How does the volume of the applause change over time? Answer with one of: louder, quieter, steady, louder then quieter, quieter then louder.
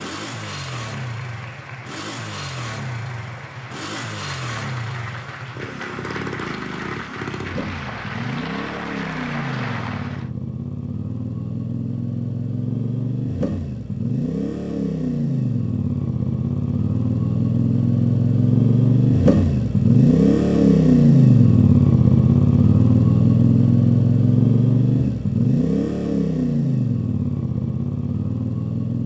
louder.